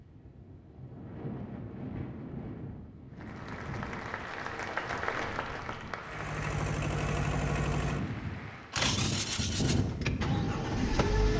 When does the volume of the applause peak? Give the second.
5 s.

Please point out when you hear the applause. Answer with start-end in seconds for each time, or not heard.
3.1-8.8.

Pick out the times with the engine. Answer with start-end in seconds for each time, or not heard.
6.0-11.3.